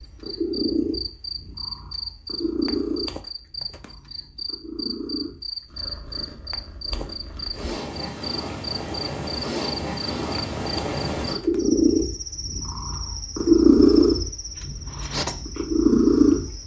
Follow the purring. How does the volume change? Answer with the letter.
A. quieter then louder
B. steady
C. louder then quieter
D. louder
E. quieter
A.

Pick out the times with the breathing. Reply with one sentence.
You can't hear the breathing here.